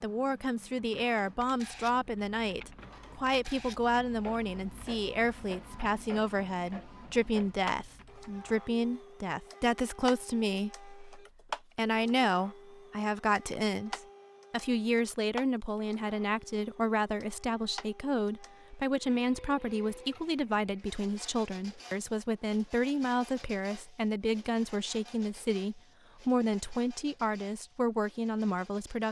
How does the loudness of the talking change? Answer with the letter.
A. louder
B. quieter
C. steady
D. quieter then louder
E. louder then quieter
C.